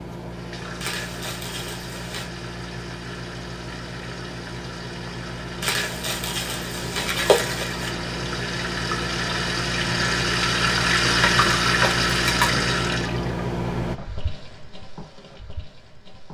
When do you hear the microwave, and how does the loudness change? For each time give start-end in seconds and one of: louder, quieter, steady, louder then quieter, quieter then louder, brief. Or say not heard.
0.0-14.0 louder.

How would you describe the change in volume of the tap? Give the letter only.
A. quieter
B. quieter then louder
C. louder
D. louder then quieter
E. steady
D.